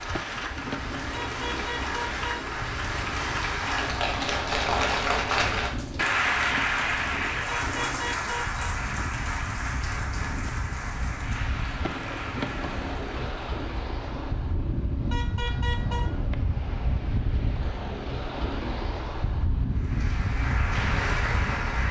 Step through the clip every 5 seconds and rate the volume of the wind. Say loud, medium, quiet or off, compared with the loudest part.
medium, medium, loud, loud, loud.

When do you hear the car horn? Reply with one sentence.
You can hear the car horn from 1.1 to 2.5 s, from 7.5 to 8.6 s and from 15.1 to 16.1 s.